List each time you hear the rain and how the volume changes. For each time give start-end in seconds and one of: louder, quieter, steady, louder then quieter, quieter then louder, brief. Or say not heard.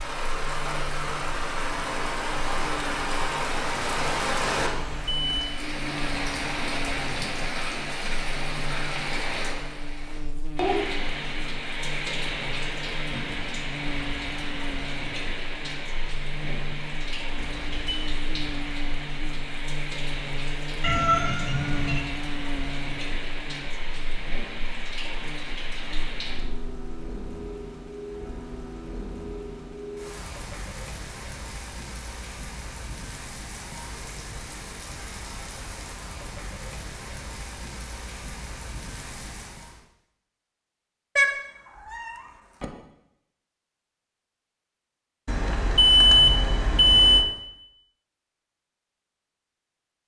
0.0-39.9 quieter.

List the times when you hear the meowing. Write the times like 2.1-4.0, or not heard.
20.8-22.1, 41.1-42.6.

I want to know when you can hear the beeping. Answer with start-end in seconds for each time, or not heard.
4.8-5.5, 17.4-18.1, 45.2-47.2.